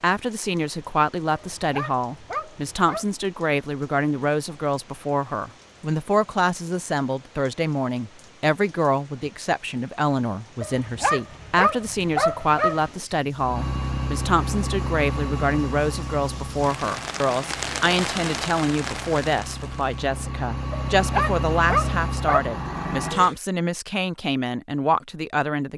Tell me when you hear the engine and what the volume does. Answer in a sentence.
The engine can be heard from 13.3 to 23.4 s, getting quieter then louder.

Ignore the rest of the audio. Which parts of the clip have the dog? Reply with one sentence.
You can hear the dog from 1.3 to 3.0 s, from 10.6 to 12.9 s and from 20.9 to 22.4 s.